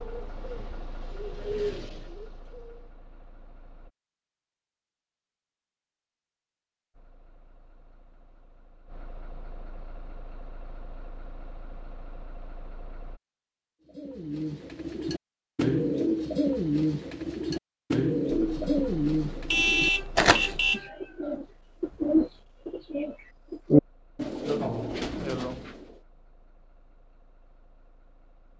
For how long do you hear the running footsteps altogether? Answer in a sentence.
You can't hear the running footsteps here.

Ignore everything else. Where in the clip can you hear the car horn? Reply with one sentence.
The car horn can be heard from 19.4 to 20.9 s.